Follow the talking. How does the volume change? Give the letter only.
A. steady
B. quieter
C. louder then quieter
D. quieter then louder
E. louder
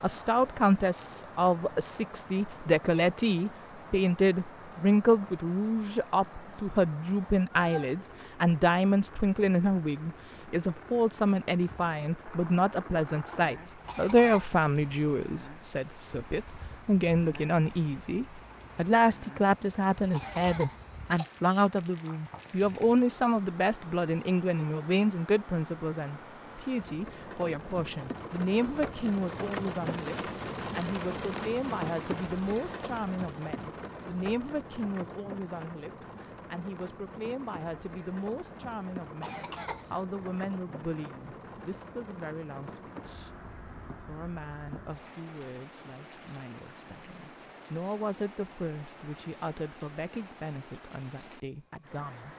B.